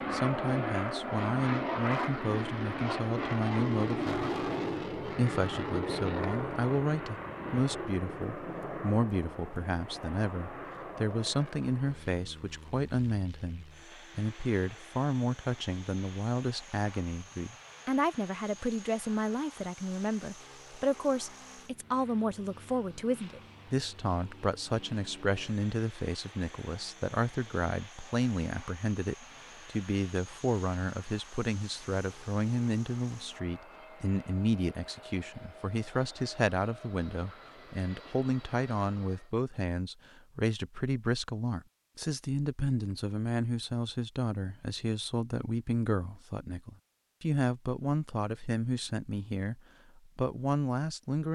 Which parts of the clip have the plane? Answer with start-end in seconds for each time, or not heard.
0.0-39.3.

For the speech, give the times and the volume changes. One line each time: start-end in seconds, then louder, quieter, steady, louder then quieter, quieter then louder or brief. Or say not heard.
0.1-51.3 steady.